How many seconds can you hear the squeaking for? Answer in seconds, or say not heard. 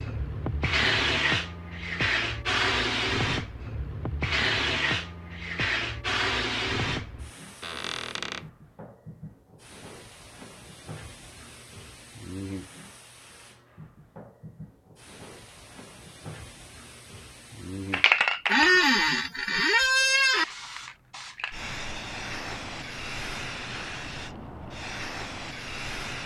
3 s.